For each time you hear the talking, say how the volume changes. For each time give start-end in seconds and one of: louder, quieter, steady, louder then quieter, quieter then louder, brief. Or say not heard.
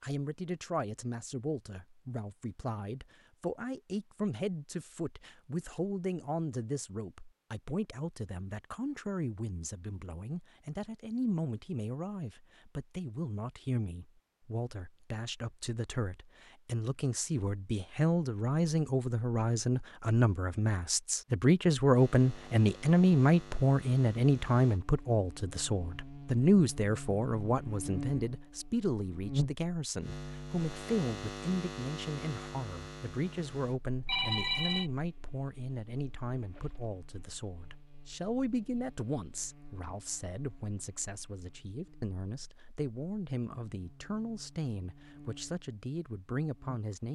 0.0-47.1 louder then quieter.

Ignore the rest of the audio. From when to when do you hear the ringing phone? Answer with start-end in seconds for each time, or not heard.
34.0-34.9.